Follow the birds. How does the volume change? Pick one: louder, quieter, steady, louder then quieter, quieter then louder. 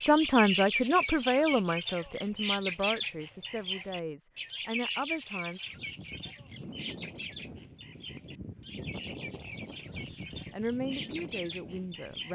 quieter.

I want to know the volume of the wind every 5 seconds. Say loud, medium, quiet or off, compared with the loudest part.
off, loud, loud.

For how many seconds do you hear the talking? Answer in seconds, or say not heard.
8 s.